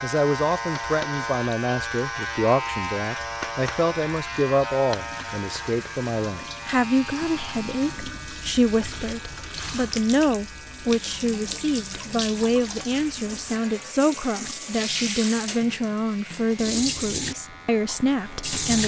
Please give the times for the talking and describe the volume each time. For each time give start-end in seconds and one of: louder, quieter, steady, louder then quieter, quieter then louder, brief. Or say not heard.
0.0-18.8 steady.